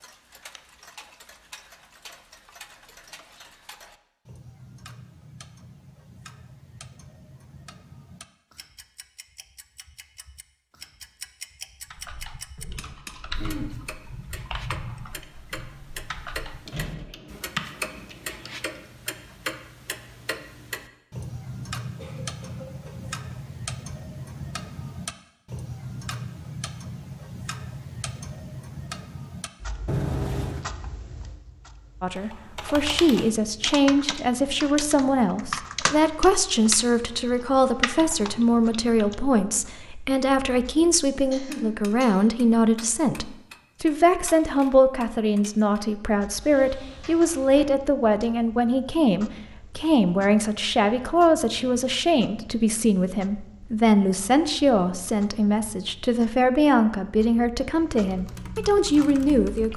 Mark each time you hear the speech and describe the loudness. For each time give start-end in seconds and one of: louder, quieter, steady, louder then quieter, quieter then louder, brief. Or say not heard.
32.0-59.7 steady.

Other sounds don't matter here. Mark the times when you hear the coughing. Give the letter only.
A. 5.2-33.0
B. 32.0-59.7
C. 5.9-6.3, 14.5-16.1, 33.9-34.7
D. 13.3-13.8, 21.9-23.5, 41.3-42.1
D.